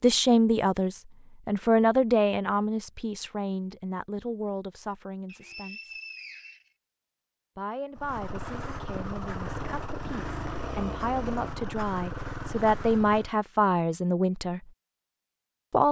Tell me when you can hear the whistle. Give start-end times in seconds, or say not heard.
5.2-6.7.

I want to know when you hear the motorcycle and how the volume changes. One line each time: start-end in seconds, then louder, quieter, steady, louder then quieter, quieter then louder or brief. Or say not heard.
8.0-13.3 steady.